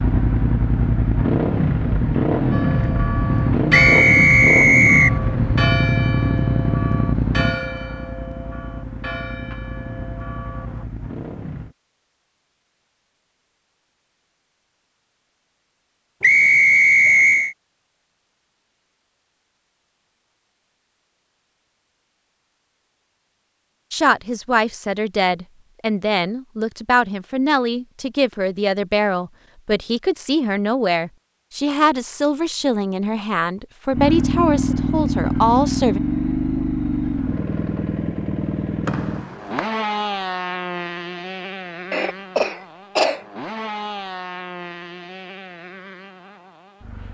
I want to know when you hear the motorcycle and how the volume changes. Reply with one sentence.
The motorcycle can be heard from 0.0 to 11.8 s, getting quieter; and from 33.9 to 47.0 s, getting quieter.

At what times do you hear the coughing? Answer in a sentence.
The coughing can be heard from 41.9 to 43.2 s.